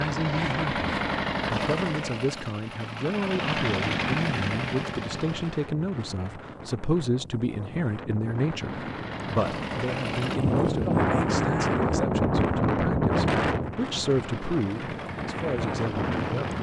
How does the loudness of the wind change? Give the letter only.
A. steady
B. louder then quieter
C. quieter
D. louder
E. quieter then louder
B.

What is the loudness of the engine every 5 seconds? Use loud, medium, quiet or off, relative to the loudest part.
loud, medium, medium, medium.